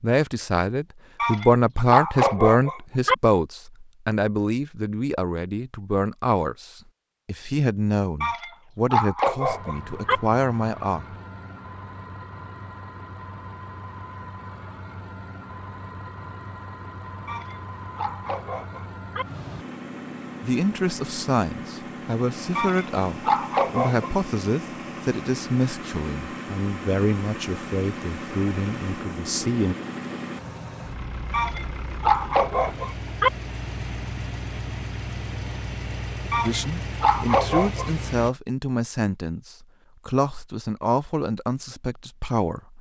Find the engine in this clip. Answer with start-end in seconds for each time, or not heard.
9.4-38.3.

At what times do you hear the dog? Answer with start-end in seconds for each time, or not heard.
1.2-3.1, 8.2-10.2, 17.2-19.2, 22.6-24.1, 31.3-33.3, 36.3-37.9.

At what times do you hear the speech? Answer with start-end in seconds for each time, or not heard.
0.0-11.2, 20.4-29.8, 36.4-42.7.